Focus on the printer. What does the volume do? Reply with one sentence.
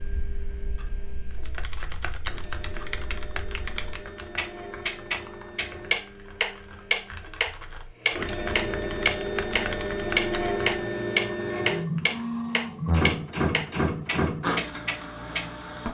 The volume of the printer goes up.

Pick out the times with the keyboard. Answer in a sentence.
You can hear the keyboard from 1.3 to 10.7 s.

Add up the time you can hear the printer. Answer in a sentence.
You can hear the printer for 16 seconds altogether.